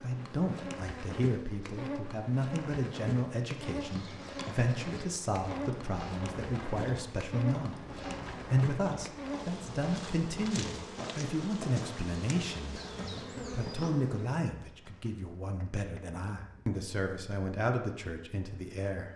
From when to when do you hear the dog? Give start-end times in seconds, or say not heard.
not heard.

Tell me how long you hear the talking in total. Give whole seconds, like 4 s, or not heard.
19 s.